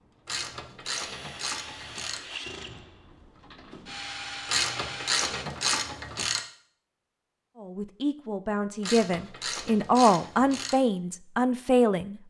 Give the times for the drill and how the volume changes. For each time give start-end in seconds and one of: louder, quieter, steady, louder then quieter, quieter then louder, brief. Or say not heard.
0.0-5.5 louder.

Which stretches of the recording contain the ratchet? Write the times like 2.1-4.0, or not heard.
0.2-2.2, 4.5-6.4, 8.8-10.8.